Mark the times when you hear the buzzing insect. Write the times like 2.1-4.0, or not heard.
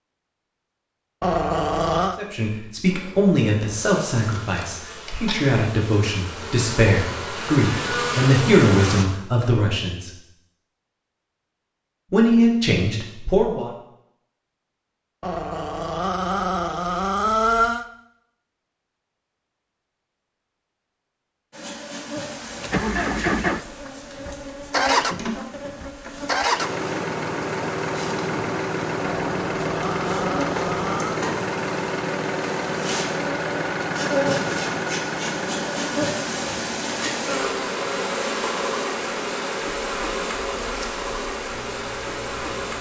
2.9-9.1, 21.5-42.7.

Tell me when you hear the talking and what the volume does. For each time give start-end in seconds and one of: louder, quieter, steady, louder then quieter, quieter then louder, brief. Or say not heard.
2.1-10.1 quieter then louder
12.1-13.7 brief.